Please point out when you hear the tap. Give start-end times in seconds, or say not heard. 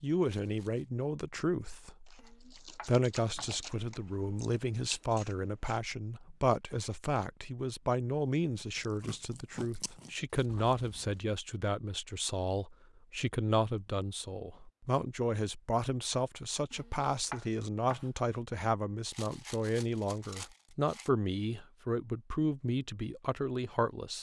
not heard.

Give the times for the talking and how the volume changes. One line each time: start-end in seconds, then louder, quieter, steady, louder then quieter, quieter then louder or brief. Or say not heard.
0.0-24.1 steady.